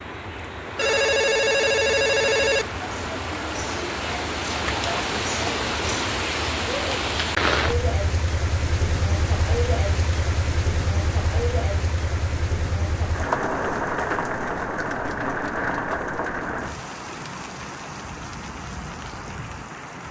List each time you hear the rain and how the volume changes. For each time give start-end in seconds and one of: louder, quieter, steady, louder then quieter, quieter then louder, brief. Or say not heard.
0.0-20.0 louder then quieter.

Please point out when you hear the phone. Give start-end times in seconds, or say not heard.
0.8-2.7.